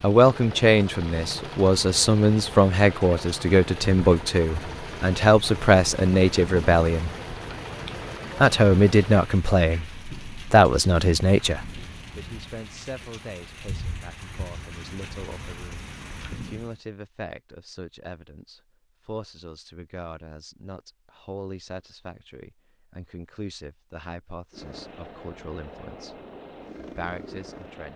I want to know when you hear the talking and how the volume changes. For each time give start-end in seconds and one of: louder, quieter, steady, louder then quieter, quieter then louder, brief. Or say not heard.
0.0-7.1 steady
8.4-26.1 quieter
26.9-27.9 brief.